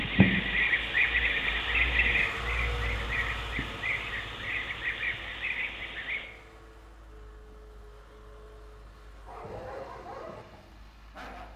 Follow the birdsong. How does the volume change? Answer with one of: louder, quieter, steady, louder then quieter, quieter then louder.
quieter.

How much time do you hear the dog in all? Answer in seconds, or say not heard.
2 s.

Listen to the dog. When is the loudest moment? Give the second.
10 s.